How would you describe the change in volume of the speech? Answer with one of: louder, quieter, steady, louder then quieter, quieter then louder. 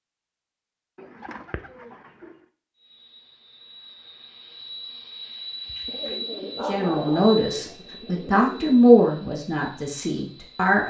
louder then quieter.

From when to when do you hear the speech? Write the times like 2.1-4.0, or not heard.
6.7-10.8.